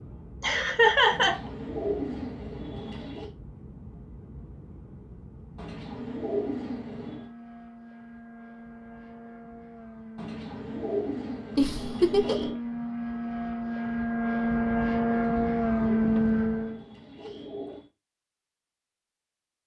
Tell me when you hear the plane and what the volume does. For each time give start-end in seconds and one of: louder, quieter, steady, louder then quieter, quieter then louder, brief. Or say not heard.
0.0-16.9 louder.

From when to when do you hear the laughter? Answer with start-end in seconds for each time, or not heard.
0.4-1.4, 11.6-12.5.